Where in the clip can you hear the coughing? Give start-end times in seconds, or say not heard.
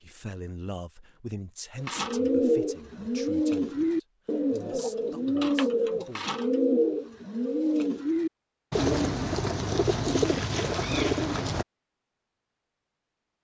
not heard.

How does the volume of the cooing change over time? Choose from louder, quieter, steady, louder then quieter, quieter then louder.
steady.